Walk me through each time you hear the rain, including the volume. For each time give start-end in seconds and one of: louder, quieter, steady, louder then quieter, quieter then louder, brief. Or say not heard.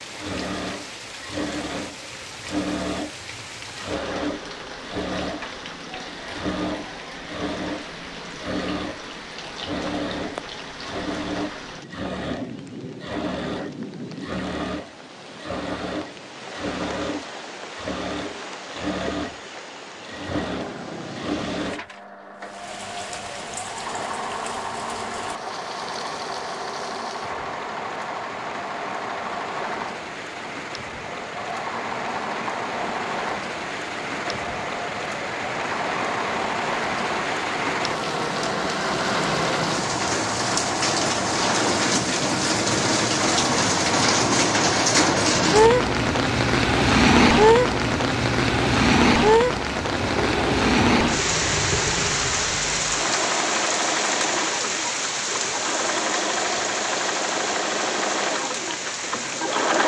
0.0-59.8 louder.